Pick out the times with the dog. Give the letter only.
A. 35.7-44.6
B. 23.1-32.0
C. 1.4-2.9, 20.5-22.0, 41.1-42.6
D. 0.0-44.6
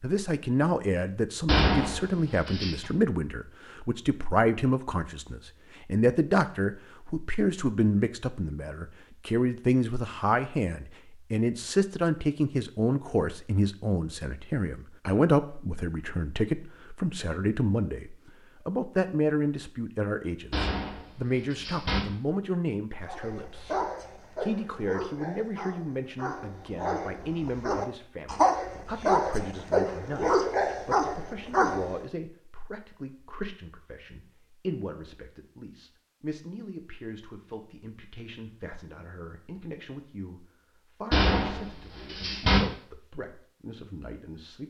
B.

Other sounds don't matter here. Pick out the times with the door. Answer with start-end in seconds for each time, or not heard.
1.4-2.9, 20.5-22.0, 41.1-42.6.